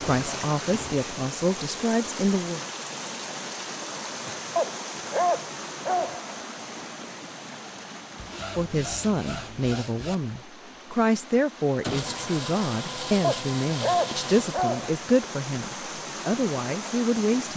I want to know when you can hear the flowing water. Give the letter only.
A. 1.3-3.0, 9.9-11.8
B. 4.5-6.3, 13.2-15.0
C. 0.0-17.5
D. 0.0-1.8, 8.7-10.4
C.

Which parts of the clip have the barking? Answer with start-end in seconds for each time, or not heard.
4.5-6.3, 13.2-15.0.